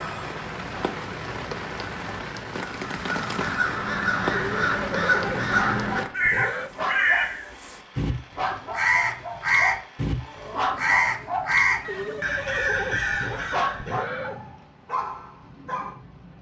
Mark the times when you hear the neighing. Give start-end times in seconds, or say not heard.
4.3-6.7, 11.8-14.4.